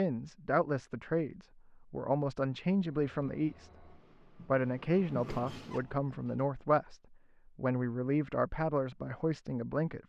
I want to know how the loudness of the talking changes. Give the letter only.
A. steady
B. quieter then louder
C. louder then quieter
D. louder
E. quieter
A.